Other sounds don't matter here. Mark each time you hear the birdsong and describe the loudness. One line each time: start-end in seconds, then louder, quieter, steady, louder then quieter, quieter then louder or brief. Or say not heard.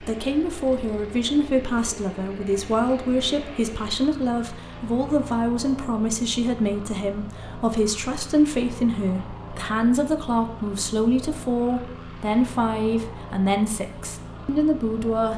not heard.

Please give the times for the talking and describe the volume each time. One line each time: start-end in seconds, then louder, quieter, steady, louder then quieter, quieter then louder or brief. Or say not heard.
0.0-15.3 steady.